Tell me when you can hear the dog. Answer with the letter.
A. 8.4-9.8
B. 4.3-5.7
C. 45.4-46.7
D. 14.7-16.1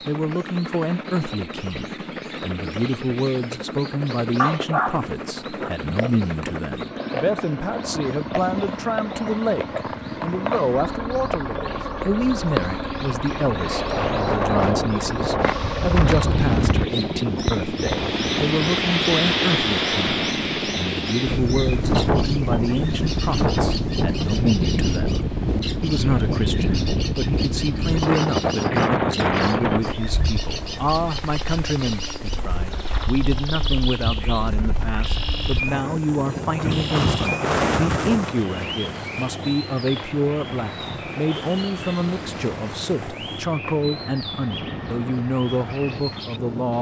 B.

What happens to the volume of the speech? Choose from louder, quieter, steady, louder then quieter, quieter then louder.
steady.